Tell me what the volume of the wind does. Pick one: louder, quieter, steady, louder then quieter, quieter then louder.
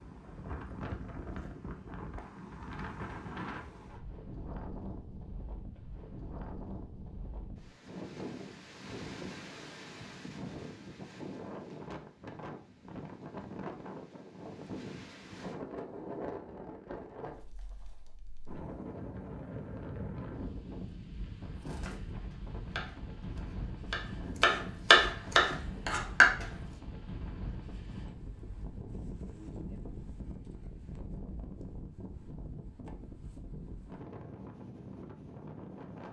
steady.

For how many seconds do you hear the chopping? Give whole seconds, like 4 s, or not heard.
5 s.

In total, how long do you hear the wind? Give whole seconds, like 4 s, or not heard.
36 s.